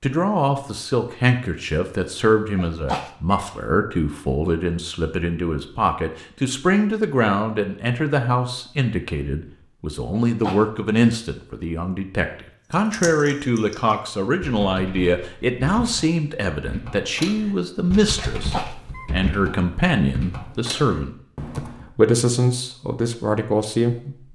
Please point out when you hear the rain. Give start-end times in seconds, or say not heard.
not heard.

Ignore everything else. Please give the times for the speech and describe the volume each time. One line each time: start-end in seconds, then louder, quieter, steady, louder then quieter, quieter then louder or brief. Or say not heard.
0.0-24.3 steady.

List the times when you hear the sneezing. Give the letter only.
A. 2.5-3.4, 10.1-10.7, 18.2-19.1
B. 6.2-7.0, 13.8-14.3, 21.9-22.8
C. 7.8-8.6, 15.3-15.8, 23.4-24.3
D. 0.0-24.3
A.